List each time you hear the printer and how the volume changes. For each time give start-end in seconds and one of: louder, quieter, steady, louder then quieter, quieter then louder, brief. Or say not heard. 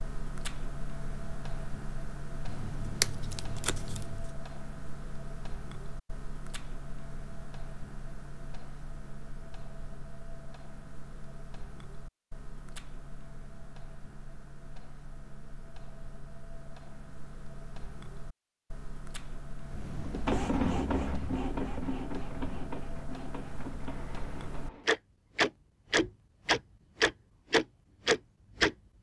19.6-24.9 quieter.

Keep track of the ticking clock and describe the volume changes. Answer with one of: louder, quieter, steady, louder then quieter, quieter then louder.
quieter then louder.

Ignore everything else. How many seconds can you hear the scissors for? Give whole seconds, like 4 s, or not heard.
2 s.